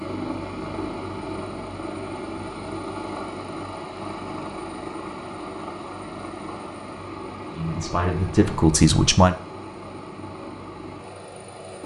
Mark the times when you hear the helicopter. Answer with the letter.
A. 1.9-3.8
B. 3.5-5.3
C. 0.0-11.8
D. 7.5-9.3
C.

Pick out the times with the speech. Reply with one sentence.
The speech can be heard from 7.5 to 9.3 s.